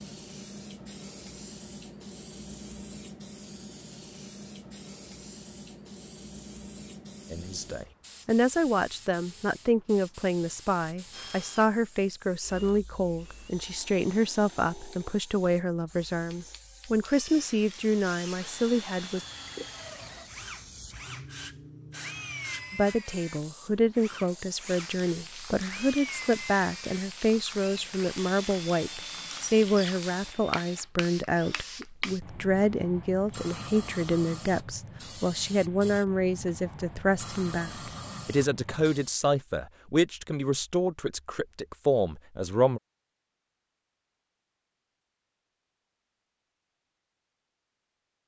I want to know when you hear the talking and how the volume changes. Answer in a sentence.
You can hear the talking from 7.3 to 19.2 s, at a steady volume; and from 22.7 to 42.8 s, at a steady volume.